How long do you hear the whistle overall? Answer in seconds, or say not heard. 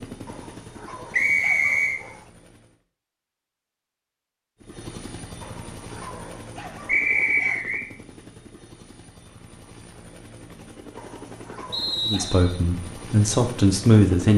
3 s.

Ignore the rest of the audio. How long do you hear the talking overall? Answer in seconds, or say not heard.
2 s.